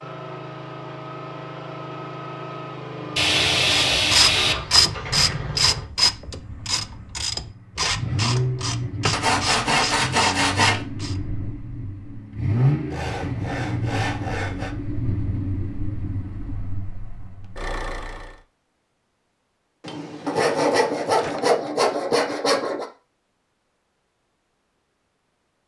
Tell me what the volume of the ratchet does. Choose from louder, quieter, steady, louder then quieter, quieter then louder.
quieter.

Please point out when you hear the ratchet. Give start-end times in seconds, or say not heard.
3.6-11.2.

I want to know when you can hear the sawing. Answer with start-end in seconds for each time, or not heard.
3.1-4.5, 9.1-10.8, 12.9-14.8, 20.2-22.9.